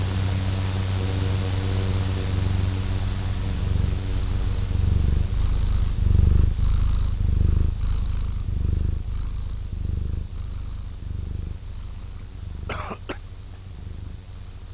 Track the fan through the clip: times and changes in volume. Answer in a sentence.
The fan can be heard from 0.0 to 14.7 s, getting quieter.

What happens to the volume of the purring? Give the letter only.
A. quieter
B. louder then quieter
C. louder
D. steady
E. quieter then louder
B.